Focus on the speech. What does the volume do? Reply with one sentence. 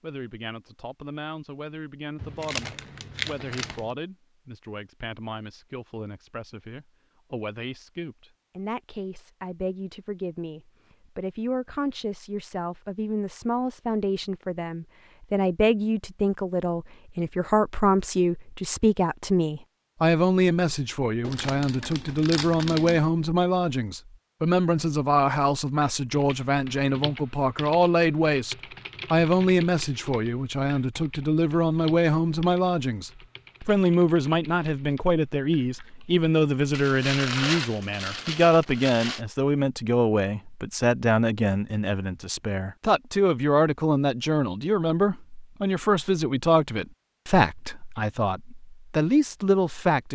The loudness of the speech goes up.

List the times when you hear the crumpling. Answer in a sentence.
The crumpling can be heard from 2.2 to 3.9 s, from 21.2 to 23.0 s and from 36.7 to 39.2 s.